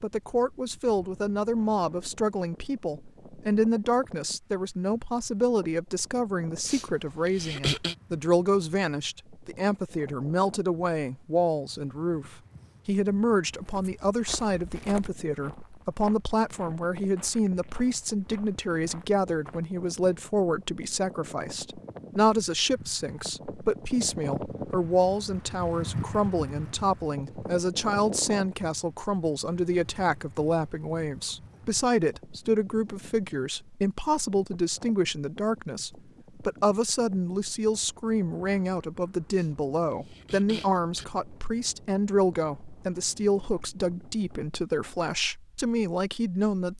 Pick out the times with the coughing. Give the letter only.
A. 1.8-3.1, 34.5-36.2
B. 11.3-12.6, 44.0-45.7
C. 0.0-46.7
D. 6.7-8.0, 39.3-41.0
D.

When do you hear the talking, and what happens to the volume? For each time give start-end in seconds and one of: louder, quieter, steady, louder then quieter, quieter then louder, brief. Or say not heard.
0.0-46.7 steady.